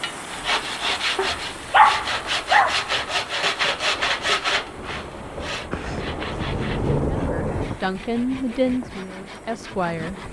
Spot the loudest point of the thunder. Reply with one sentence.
The volume of the thunder peaks at 7 seconds.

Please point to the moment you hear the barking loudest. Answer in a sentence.
The volume of the barking peaks at 2 seconds.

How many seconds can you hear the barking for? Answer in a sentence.
The barking can be heard for 4 seconds in total.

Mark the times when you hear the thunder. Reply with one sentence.
The thunder can be heard from 3.7 to 7.8 s.